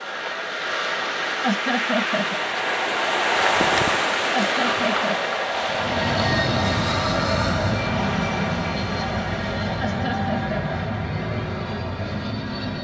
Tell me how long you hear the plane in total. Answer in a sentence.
You can hear the plane for 7 seconds altogether.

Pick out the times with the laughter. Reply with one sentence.
The laughter can be heard from 1.4 to 2.4 s, from 4.3 to 5.2 s and from 9.8 to 10.6 s.